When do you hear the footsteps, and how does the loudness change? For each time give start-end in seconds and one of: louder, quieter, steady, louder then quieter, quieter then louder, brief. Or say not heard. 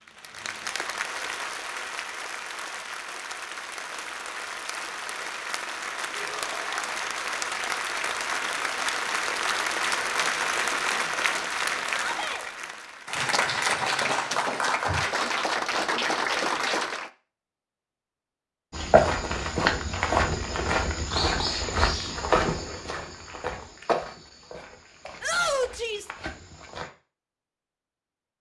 18.7-26.9 quieter.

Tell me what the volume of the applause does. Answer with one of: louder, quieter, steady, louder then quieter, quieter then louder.
louder.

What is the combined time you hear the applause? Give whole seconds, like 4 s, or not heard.
17 s.